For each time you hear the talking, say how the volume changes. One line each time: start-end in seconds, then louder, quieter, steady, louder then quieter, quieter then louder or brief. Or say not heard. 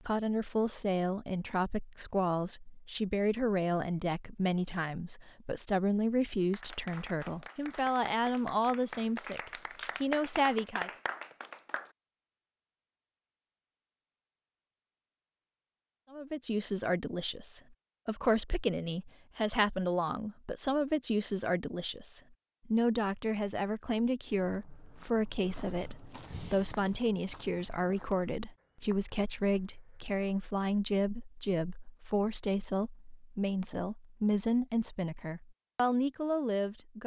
0.1-10.9 steady
16.1-37.0 steady.